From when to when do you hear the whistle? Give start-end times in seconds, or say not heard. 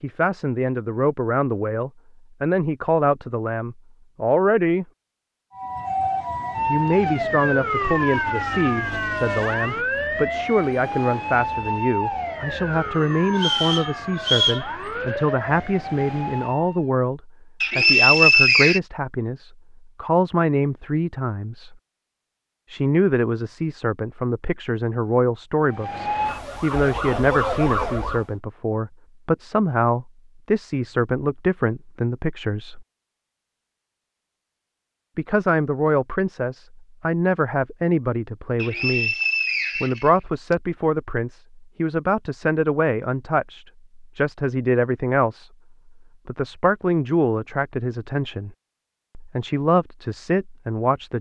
13.3-14.7, 17.6-18.8, 38.5-40.5.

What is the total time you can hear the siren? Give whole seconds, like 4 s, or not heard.
14 s.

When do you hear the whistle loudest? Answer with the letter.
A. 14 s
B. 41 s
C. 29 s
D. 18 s
D.